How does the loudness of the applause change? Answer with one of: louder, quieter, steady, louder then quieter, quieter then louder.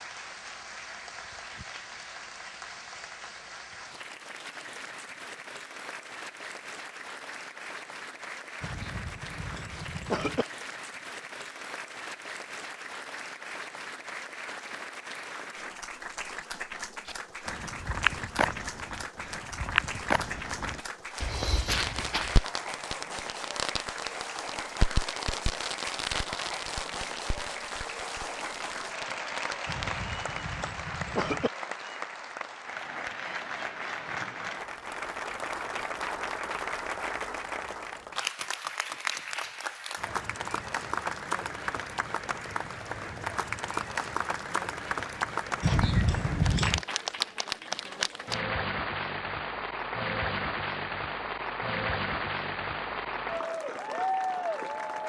louder.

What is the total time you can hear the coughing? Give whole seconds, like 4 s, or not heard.
5 s.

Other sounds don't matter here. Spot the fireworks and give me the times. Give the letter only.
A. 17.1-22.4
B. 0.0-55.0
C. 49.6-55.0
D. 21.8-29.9
D.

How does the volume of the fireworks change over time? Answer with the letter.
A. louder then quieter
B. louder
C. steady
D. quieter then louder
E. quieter
E.